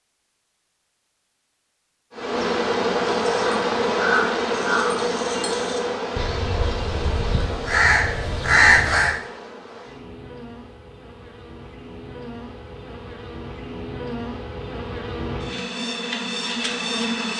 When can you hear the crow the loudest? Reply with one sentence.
The loudest moment of the crow is at 9 seconds.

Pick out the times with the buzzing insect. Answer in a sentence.
The buzzing insect can be heard from 2.1 to 17.3 s.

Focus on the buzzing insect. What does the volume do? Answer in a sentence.
The volume of the buzzing insect goes down, then up.